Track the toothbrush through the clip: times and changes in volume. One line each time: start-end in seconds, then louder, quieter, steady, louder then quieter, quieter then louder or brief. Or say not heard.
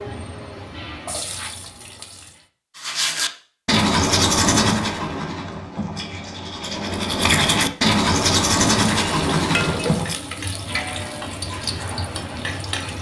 2.8-10.2 quieter then louder.